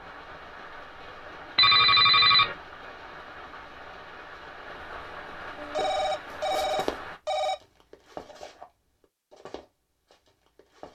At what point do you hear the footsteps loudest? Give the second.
7 s.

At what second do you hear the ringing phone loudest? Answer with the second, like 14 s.
2 s.